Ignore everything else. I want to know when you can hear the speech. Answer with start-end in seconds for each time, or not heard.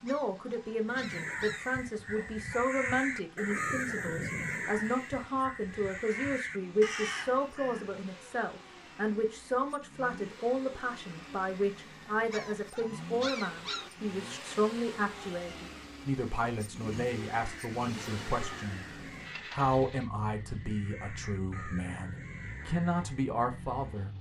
0.0-18.9, 19.5-24.1.